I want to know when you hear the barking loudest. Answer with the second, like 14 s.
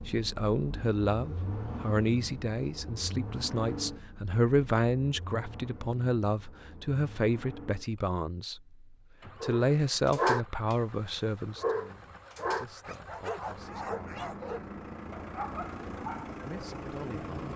10 s.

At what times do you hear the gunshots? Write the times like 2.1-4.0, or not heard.
not heard.